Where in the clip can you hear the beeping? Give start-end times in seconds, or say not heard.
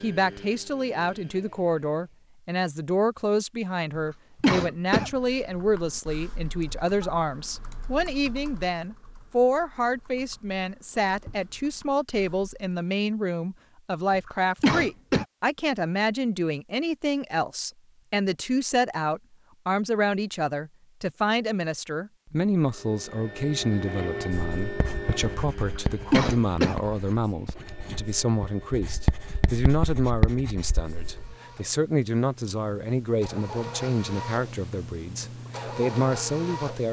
not heard.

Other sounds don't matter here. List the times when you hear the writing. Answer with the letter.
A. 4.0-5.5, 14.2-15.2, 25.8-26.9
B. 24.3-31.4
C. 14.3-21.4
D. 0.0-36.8
B.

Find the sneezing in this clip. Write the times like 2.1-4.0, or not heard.
4.0-5.5, 14.2-15.2, 25.8-26.9.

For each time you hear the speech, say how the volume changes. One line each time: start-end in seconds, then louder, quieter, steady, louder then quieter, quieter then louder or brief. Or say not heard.
0.0-36.8 steady.